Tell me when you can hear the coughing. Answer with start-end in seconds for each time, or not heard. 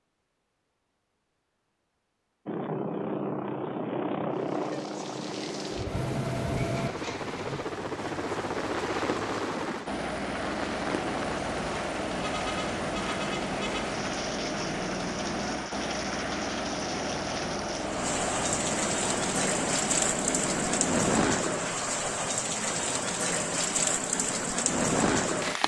not heard.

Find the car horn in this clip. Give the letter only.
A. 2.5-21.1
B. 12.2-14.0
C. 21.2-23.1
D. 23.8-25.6
B.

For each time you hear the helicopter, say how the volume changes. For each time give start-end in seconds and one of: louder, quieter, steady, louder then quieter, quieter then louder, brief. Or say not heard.
2.5-21.1 steady.